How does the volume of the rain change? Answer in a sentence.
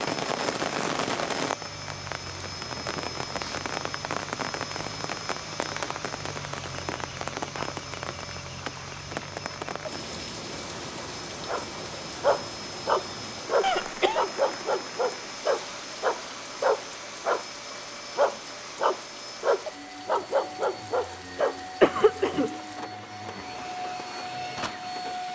The loudness of the rain goes down.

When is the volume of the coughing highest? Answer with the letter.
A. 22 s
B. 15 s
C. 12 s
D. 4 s
A.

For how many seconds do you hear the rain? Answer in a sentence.
You can hear the rain for 25 seconds altogether.